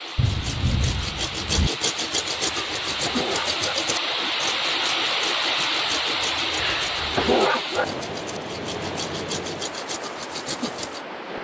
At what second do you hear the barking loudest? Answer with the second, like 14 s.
7 s.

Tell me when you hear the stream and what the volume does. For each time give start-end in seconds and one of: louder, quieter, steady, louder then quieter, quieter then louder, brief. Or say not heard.
0.0-11.3 louder then quieter.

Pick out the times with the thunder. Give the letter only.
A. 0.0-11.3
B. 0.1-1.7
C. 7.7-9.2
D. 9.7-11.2
B.